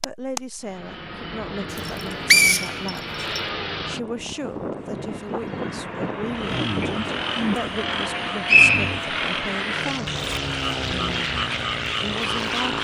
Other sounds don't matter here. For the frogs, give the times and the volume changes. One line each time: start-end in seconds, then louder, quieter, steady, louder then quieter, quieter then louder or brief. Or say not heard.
6.3-12.7 steady.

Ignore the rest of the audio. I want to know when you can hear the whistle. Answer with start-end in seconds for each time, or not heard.
1.9-3.4, 8.1-8.9.